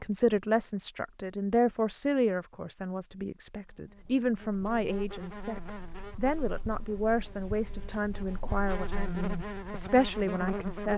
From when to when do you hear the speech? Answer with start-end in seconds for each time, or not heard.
0.0-10.9.